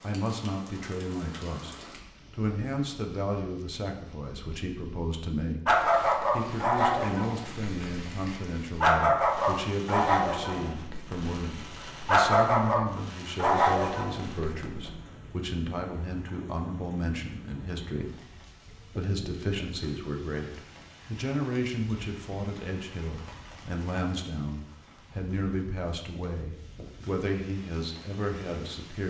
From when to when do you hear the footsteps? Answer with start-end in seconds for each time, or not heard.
not heard.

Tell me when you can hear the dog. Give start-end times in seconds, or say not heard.
5.7-15.0.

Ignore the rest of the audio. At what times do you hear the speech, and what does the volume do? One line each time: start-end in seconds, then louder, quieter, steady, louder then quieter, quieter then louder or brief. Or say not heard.
0.0-29.0 steady.